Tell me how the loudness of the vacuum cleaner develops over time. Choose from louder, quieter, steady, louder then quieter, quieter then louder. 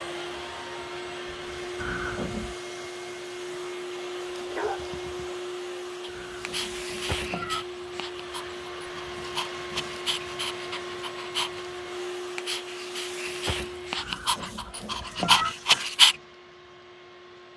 quieter.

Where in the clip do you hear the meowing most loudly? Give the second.
15 s.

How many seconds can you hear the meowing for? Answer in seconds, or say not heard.
4 s.